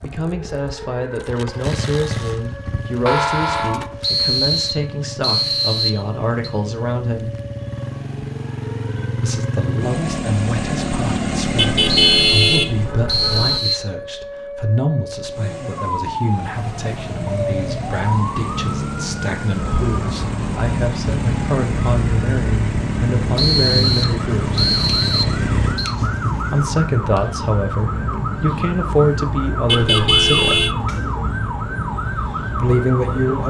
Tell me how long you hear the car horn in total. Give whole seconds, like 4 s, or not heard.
4 s.